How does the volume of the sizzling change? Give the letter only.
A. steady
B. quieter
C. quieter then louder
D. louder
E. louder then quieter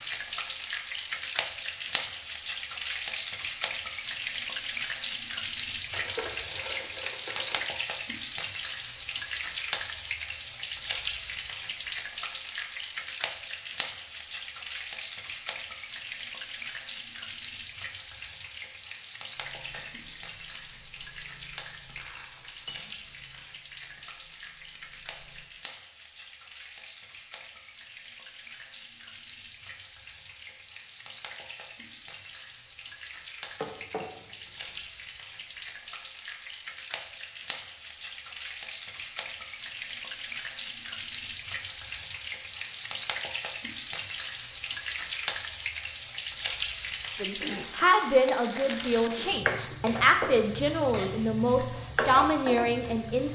C.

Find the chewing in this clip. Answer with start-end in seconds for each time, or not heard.
19.3-25.5.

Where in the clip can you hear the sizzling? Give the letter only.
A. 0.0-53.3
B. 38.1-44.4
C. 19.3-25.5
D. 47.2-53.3
A.